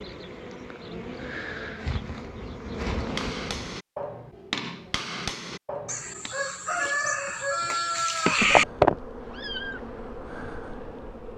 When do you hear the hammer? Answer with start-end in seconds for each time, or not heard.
3.0-6.3.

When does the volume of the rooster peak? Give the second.
8 s.